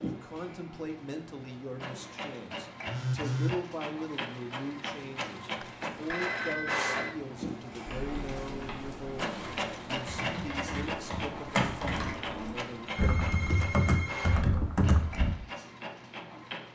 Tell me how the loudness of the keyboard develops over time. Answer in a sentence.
The volume of the keyboard goes up.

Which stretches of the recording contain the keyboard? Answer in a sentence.
You can hear the keyboard from 7.8 to 15.3 s.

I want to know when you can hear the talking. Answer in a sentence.
You can hear the talking from 0.0 to 12.9 s.